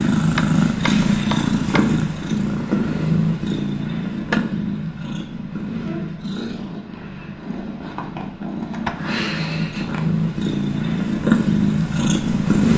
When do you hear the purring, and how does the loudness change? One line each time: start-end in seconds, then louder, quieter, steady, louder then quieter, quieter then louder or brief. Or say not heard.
0.0-12.7 quieter then louder.